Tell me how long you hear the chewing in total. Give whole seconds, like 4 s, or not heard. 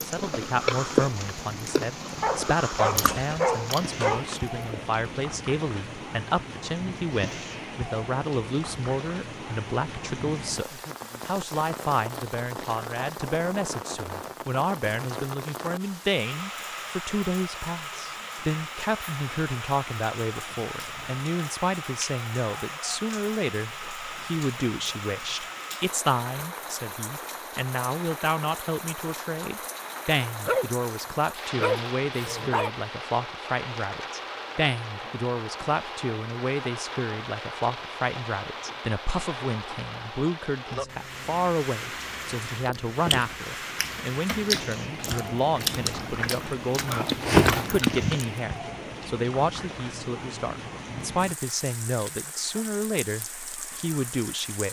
10 s.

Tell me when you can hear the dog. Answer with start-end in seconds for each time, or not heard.
2.2-4.2, 30.4-32.8.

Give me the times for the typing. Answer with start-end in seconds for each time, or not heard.
not heard.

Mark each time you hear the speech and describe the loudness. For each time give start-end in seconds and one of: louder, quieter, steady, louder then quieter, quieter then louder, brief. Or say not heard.
0.0-54.6 steady.